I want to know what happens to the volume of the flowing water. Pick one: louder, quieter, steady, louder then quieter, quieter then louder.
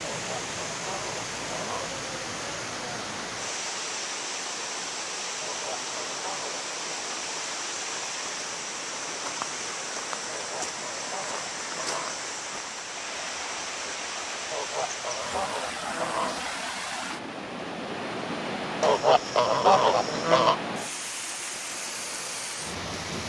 steady.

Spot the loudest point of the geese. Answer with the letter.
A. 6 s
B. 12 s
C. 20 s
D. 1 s
C.